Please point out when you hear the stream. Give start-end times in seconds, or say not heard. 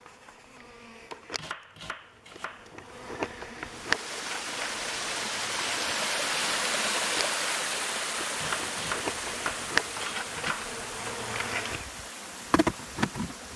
3.6-13.5.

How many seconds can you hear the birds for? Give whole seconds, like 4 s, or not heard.
not heard.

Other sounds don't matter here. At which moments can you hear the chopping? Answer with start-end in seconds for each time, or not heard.
1.4-2.9, 8.3-10.7.